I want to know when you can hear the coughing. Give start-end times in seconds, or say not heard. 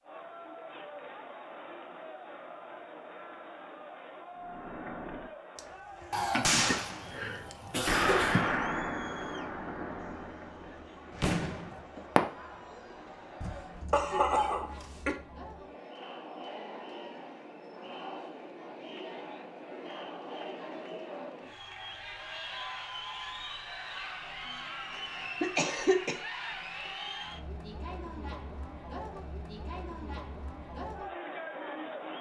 6.1-8.4, 13.4-15.2, 24.9-26.1.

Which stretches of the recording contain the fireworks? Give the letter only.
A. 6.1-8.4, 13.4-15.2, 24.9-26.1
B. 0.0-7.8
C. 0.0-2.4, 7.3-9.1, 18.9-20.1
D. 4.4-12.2
D.